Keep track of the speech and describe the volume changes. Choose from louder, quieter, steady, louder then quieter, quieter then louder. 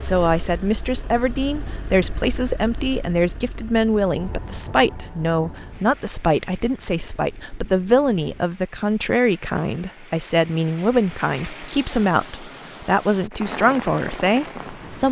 steady.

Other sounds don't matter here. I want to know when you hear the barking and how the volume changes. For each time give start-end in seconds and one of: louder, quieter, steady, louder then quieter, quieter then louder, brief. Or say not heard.
not heard.